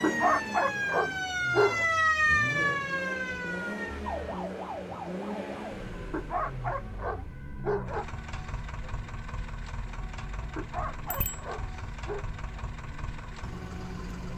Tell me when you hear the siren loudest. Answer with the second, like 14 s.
2 s.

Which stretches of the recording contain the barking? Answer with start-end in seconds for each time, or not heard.
0.0-1.9, 6.1-8.1, 10.6-12.2.